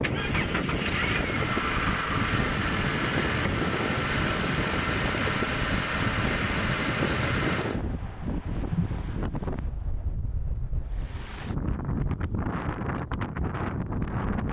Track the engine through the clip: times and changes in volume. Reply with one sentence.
The engine can be heard from 0.0 to 7.8 s, at a steady volume.